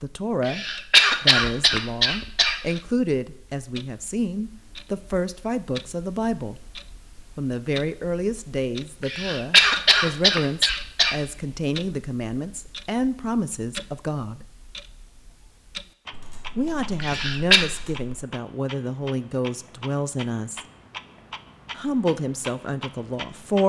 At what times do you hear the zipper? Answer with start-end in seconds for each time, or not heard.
not heard.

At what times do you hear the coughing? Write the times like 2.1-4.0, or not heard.
0.4-2.6, 9.0-11.2, 17.0-17.6.